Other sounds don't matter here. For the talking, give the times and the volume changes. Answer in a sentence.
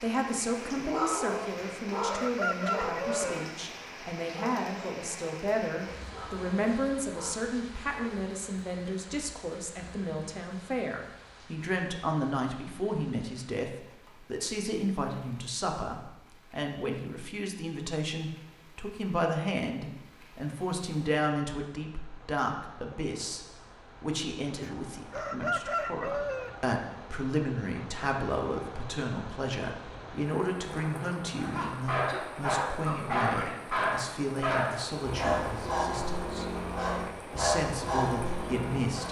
You can hear the talking from 0.0 to 36.5 s, at a steady volume; and briefly from 37.3 to 39.0 s.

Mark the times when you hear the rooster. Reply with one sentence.
You can hear the rooster from 1.6 to 3.5 s and from 24.6 to 26.6 s.